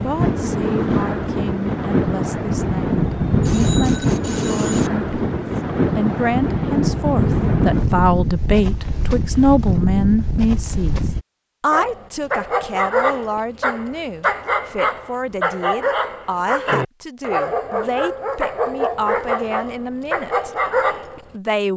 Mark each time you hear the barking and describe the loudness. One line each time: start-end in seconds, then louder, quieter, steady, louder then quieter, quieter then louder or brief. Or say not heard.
11.7-21.2 steady.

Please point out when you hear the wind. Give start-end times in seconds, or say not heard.
0.0-11.2.